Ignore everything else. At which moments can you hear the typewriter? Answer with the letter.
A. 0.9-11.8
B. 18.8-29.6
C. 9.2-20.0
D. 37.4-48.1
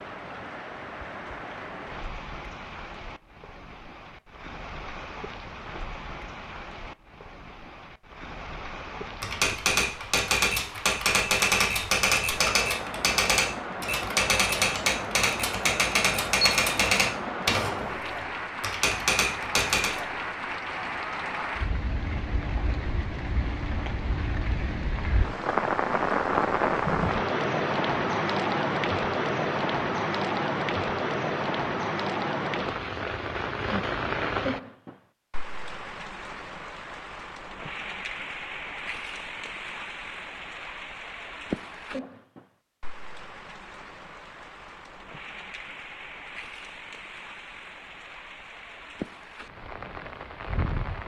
C.